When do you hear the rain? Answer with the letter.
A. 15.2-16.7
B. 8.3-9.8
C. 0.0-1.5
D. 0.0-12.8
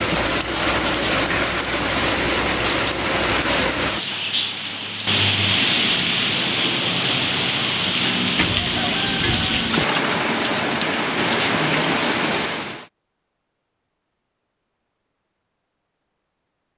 D.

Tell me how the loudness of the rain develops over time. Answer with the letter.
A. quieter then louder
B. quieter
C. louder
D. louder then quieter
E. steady
E.